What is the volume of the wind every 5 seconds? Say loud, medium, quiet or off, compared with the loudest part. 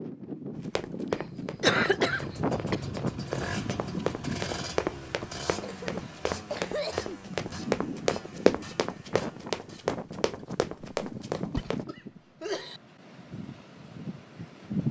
loud, medium, loud.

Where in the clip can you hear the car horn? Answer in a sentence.
You can't hear the car horn here.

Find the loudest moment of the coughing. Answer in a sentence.
The loudest moment of the coughing is at 2 seconds.